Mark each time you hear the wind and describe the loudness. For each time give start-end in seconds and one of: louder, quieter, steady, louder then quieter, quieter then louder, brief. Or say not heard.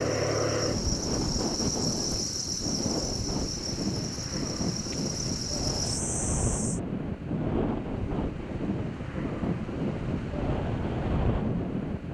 0.0-12.1 steady.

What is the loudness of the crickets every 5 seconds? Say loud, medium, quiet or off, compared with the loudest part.
loud, loud, off.